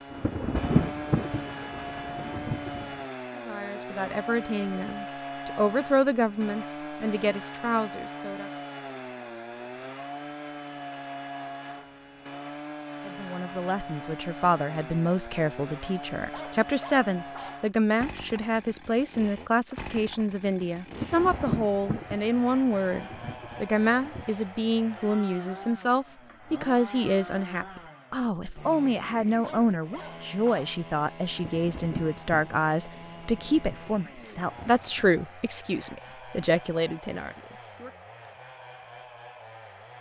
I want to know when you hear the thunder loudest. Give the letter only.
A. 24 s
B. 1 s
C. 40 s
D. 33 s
B.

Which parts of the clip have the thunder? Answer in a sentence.
The thunder can be heard from 0.1 to 2.9 s, from 20.9 to 24.2 s and from 31.3 to 35.1 s.